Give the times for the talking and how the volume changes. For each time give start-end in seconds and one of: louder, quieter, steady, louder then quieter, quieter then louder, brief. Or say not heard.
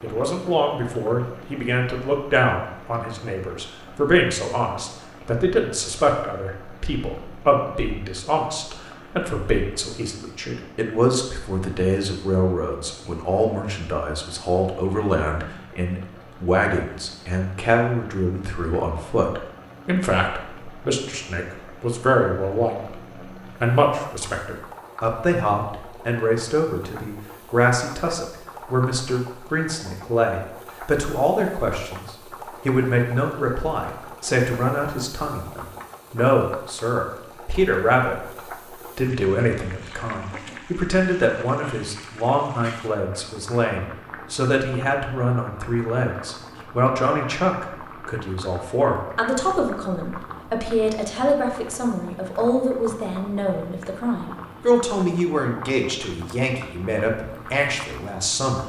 0.0-58.6 steady.